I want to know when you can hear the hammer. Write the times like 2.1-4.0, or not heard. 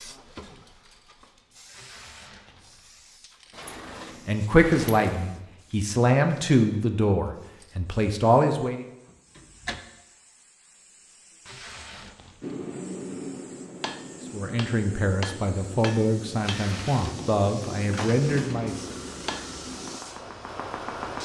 12.4-20.0.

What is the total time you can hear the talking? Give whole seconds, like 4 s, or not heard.
9 s.